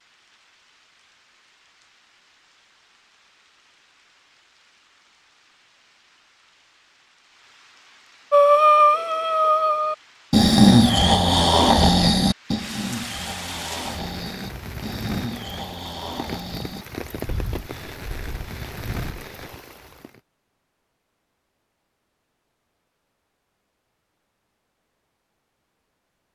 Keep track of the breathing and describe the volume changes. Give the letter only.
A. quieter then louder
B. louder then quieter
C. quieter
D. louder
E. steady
C.